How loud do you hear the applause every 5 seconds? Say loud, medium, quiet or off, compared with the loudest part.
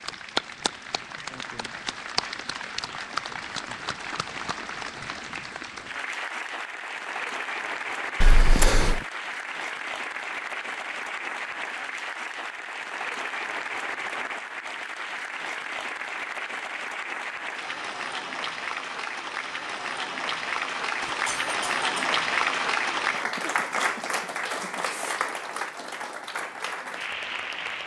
medium, medium, medium, medium, loud, medium.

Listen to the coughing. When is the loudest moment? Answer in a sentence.
The volume of the coughing peaks at 9 seconds.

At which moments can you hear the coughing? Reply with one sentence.
You can hear the coughing from 8.2 to 9.1 s and from 21.0 to 22.2 s.